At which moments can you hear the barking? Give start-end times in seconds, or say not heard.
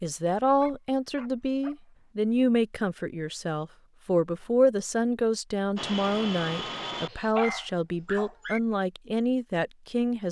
0.5-1.8, 7.1-8.6.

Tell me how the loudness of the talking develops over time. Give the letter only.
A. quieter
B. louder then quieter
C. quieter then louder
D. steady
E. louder
D.